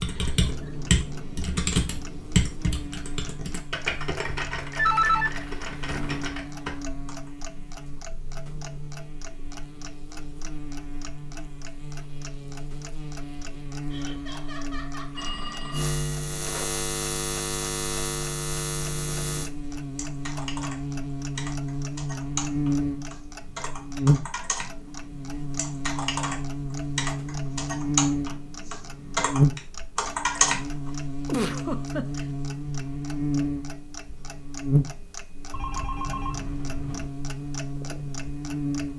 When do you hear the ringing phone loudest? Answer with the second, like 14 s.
5 s.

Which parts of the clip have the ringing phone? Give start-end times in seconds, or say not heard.
4.8-6.3, 15.2-16.7, 35.5-37.1.